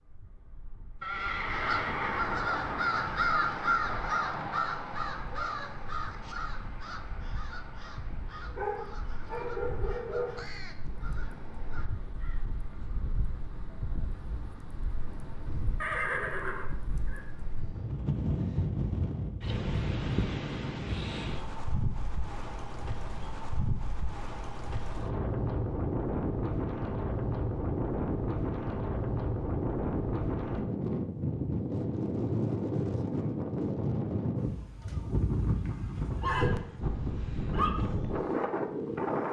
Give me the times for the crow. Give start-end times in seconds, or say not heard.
1.1-12.4.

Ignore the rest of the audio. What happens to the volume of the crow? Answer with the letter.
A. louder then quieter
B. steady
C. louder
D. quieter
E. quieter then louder
D.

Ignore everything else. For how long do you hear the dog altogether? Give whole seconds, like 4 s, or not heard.
2 s.